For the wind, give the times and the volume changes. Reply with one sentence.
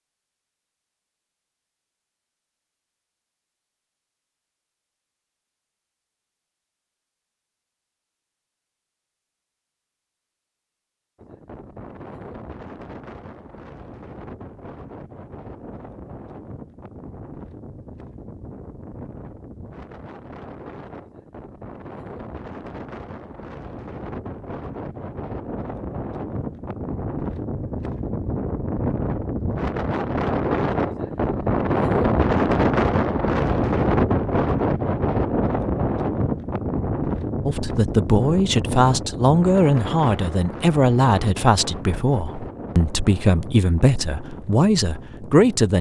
The wind can be heard from 11.2 to 45.7 s, getting louder then quieter.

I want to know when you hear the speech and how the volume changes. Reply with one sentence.
You can hear the speech from 37.5 to 45.7 s, at a steady volume.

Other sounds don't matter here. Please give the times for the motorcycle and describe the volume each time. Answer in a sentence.
You can't hear the motorcycle here.